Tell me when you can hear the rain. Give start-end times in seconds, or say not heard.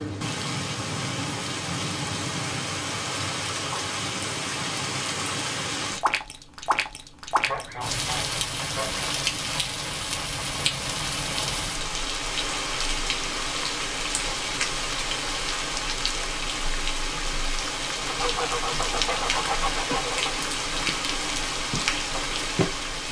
0.0-23.0.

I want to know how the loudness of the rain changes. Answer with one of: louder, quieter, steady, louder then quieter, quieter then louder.
steady.